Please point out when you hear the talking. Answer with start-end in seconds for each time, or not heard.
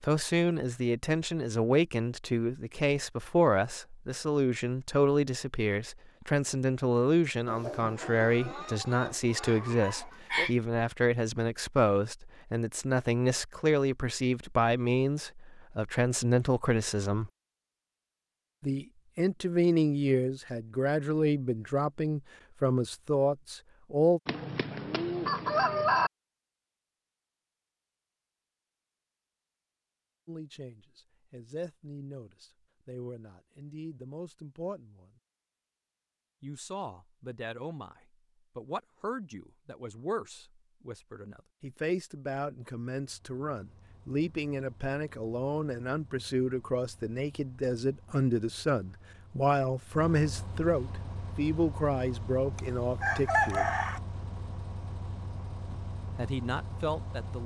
0.0-17.3, 18.6-24.2, 30.2-35.1, 36.4-53.8, 55.7-57.4.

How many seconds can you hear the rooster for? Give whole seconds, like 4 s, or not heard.
6 s.